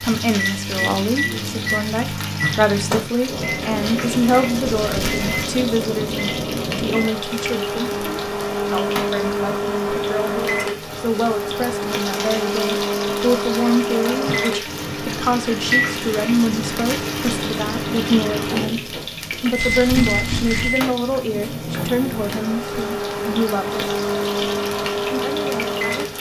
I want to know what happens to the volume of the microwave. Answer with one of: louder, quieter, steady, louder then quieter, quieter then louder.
steady.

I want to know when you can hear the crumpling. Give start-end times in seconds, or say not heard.
4.6-5.2, 19.6-20.8.